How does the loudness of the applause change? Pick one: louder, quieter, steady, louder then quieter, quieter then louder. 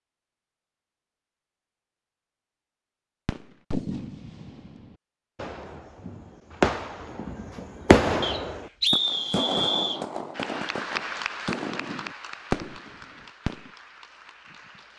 quieter.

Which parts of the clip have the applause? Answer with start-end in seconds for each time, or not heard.
10.3-14.9.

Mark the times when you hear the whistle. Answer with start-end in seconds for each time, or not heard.
8.2-10.0.